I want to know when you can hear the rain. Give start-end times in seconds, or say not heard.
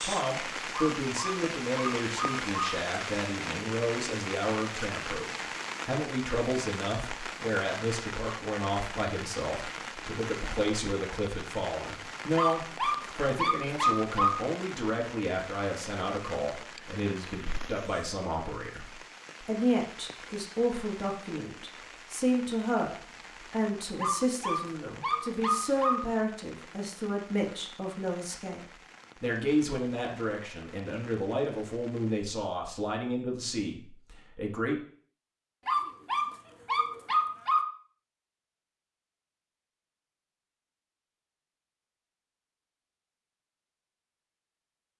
0.0-32.3.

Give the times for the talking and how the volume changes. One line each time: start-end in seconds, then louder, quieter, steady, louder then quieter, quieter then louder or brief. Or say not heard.
0.0-34.8 steady.